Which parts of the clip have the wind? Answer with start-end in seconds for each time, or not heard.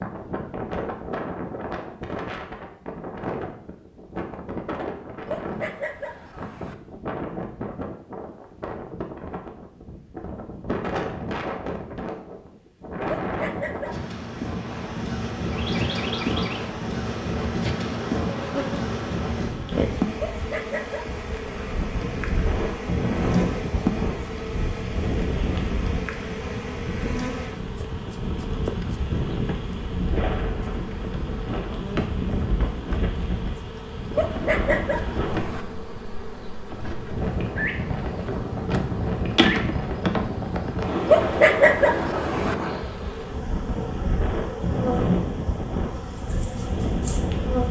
0.0-47.6.